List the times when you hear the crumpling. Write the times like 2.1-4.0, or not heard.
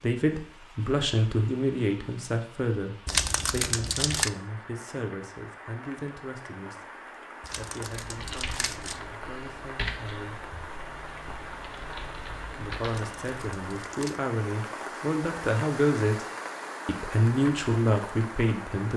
3.0-4.3, 7.4-9.0, 12.8-14.2.